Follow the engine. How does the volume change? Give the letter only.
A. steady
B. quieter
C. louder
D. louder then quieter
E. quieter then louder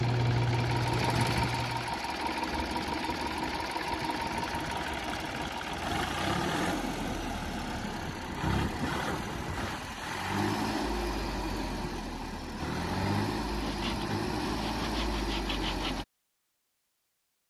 A.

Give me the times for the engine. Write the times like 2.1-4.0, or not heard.
0.0-16.1.